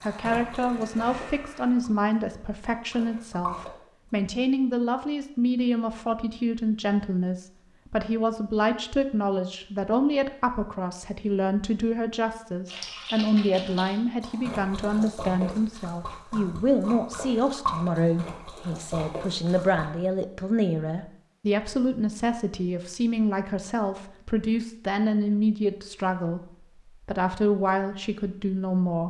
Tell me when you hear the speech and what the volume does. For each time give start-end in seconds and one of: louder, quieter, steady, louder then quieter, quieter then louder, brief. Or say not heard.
0.0-29.0 steady.